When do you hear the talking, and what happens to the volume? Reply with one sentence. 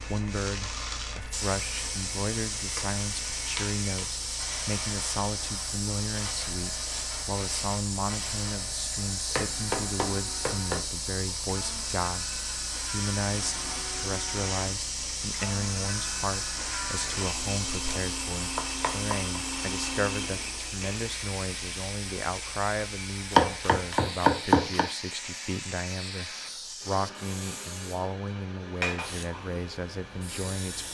The talking can be heard from 0.0 to 30.8 s, at a steady volume.